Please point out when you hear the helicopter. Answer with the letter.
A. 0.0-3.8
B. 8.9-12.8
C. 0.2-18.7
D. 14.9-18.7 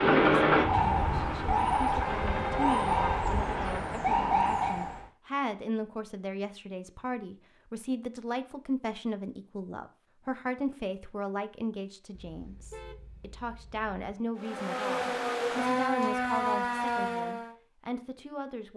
A.